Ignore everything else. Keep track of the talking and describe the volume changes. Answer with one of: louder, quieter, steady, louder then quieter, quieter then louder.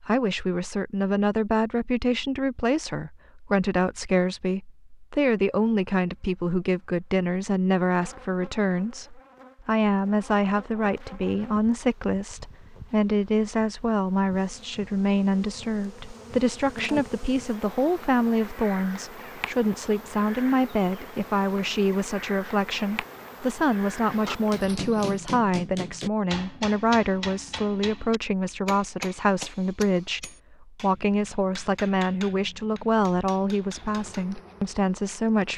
steady.